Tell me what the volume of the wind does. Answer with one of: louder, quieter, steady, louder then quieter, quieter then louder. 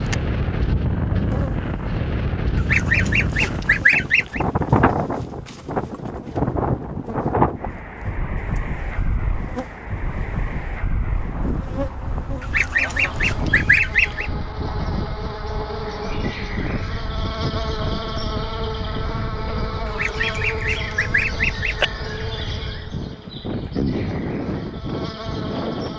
quieter.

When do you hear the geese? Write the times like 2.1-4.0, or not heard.
2.5-4.5, 12.4-14.3, 19.9-21.9.